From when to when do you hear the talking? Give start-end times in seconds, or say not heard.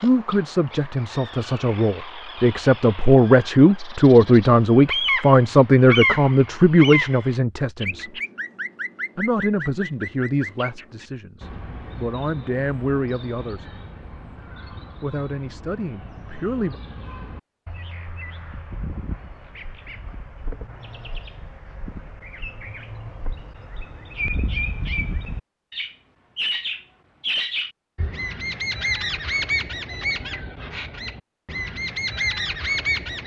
0.0-8.1, 9.2-13.7, 15.0-16.8.